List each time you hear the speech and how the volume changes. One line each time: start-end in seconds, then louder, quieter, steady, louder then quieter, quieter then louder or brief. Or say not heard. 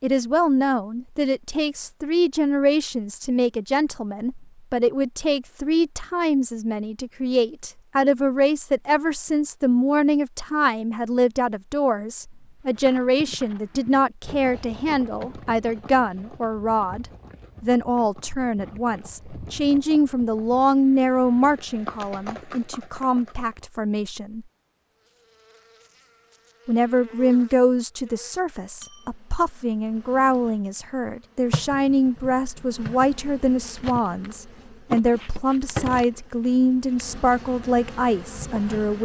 0.0-24.4 steady
26.6-39.0 steady.